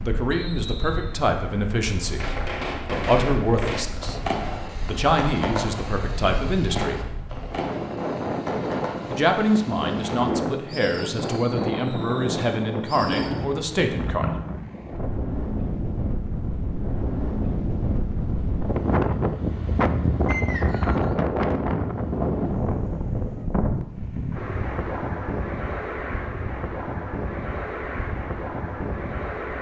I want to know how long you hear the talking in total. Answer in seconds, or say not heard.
12 s.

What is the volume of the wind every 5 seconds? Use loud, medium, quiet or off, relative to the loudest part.
quiet, medium, loud, loud, loud, medium.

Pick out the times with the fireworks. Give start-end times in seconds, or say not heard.
2.0-13.3.